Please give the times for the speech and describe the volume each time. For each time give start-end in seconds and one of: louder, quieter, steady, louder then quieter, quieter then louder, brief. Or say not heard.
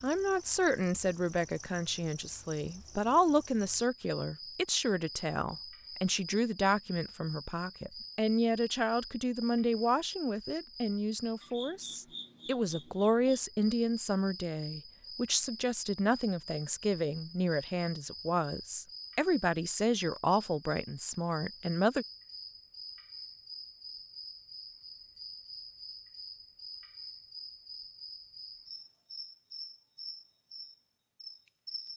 0.0-22.1 steady.